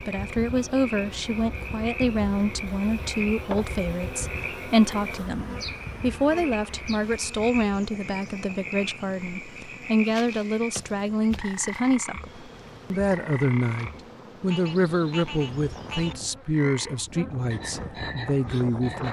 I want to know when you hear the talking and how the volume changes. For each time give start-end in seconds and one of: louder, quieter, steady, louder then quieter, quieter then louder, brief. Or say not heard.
0.1-19.0 steady.